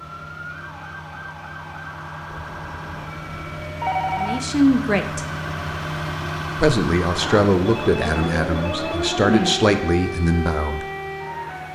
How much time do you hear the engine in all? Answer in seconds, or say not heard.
12 s.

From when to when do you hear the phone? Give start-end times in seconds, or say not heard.
2.3-4.4, 7.1-9.6.